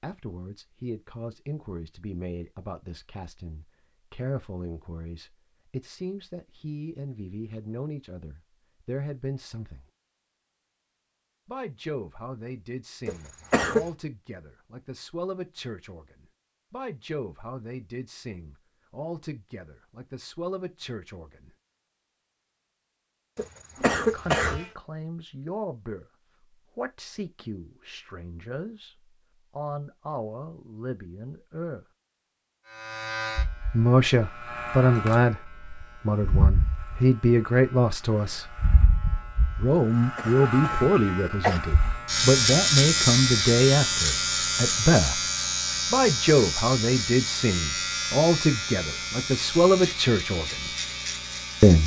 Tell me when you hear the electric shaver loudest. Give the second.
43 s.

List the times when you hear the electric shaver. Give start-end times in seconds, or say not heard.
32.6-51.8.